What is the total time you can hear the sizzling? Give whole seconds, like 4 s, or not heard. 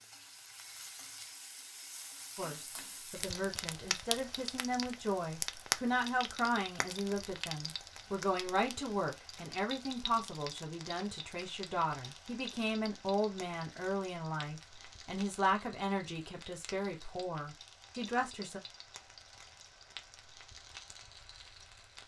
22 s.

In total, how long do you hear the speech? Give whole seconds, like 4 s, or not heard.
16 s.